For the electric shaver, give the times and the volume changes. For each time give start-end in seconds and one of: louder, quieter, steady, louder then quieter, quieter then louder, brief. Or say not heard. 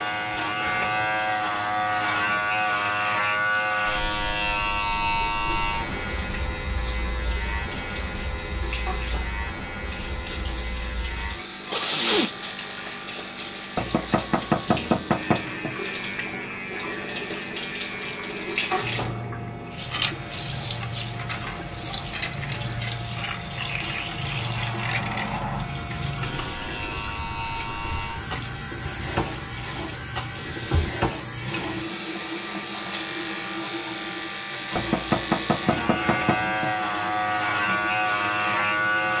0.0-39.1 quieter then louder.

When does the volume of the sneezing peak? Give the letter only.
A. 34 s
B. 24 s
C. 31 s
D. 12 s
D.